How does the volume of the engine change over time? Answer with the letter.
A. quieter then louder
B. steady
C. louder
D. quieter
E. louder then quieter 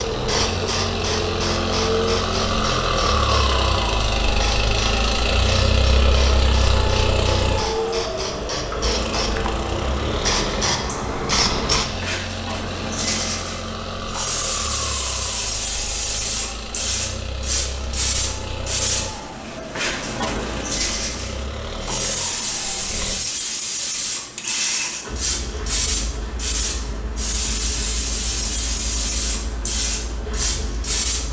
D.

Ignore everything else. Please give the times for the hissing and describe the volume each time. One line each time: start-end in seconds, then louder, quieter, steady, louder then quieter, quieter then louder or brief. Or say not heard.
0.0-31.2 steady.